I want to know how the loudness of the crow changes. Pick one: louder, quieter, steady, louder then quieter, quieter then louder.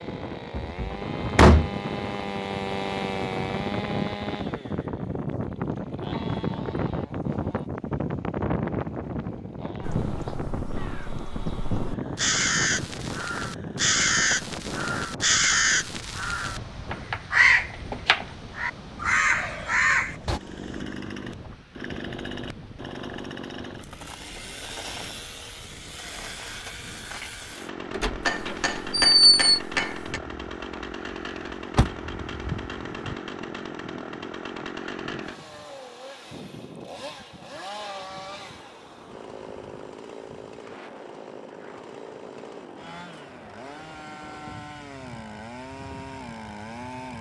louder.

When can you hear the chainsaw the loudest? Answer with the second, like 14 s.
3 s.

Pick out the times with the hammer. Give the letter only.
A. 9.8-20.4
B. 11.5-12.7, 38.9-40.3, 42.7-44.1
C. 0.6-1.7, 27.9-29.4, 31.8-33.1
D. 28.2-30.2
D.